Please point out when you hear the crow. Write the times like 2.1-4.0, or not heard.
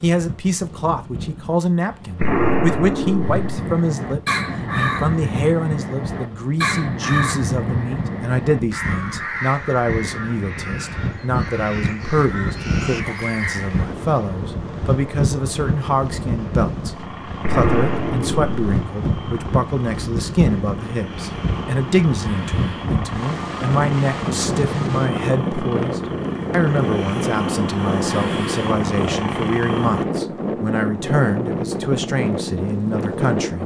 3.2-13.8.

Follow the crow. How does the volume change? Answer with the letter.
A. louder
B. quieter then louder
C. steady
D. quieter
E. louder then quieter
D.